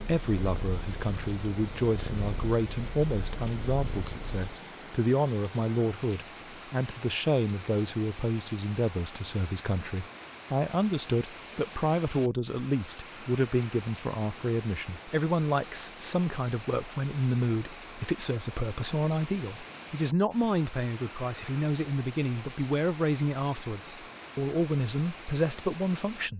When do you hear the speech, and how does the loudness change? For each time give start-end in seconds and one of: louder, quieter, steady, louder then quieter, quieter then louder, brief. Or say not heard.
0.0-26.3 steady.